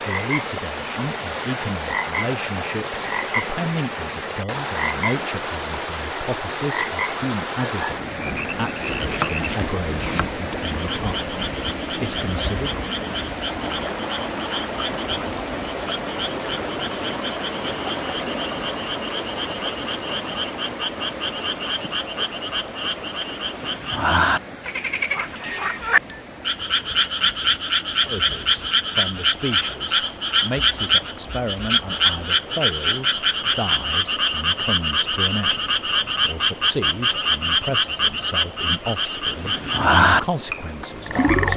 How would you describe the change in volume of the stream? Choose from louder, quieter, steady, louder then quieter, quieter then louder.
quieter.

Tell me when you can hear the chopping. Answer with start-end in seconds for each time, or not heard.
8.9-10.3.